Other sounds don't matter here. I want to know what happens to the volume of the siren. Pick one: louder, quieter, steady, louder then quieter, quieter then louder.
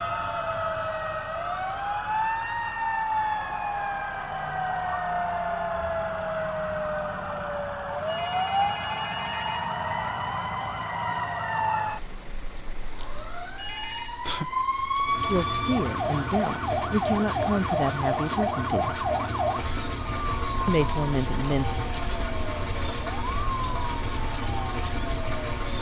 quieter.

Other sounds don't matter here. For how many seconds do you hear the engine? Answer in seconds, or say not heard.
26 s.